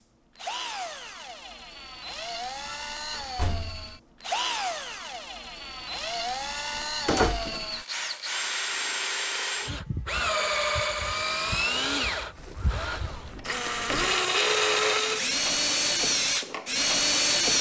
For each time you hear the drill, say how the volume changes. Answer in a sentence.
The drill can be heard from 0.3 to 17.5 s, getting louder.